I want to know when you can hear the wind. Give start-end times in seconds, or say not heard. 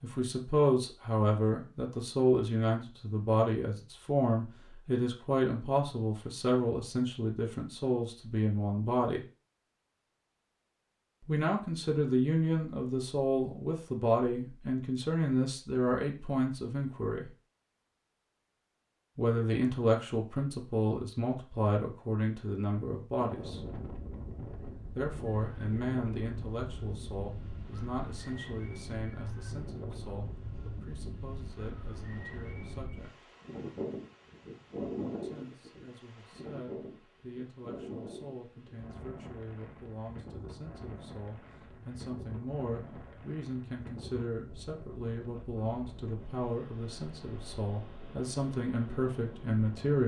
23.1-50.0.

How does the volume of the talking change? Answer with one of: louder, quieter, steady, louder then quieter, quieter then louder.
quieter then louder.